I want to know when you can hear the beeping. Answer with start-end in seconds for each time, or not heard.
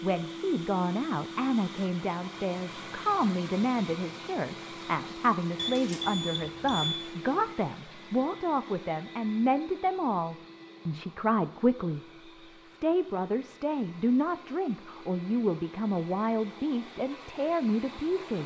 5.5-7.0.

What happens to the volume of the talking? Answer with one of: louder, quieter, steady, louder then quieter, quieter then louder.
steady.